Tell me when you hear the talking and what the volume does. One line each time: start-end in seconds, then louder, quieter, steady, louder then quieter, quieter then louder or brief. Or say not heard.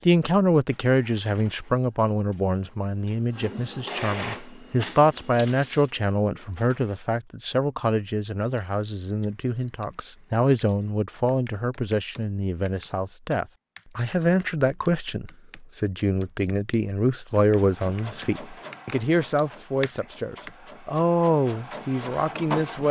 0.0-22.8 steady.